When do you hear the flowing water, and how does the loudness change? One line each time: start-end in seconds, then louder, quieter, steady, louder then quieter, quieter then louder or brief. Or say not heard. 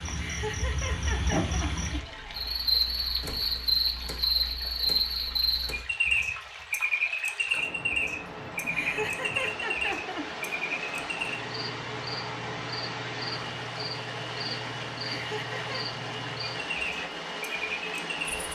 0.0-18.4 louder.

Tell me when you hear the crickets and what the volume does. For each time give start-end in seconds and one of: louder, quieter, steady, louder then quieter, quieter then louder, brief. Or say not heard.
0.0-18.4 quieter.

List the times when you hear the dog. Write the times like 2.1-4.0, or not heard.
not heard.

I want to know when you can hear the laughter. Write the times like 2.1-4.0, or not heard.
0.1-2.0, 8.6-10.3, 15.1-15.8.